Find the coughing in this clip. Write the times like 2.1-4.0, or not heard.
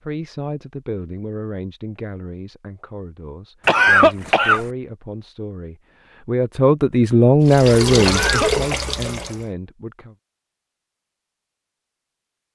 3.6-4.7, 8.1-8.8.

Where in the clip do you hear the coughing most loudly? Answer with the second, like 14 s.
4 s.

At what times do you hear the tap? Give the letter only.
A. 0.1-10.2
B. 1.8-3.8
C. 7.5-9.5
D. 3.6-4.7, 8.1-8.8
C.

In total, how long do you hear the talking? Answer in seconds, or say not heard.
10 s.